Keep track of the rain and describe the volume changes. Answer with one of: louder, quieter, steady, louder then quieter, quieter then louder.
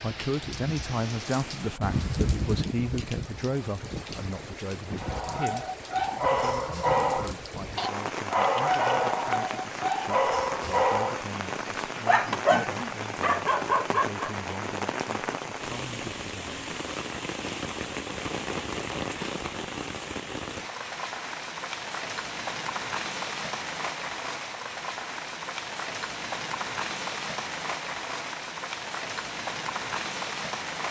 steady.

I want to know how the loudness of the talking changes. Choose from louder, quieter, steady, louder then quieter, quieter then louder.
quieter.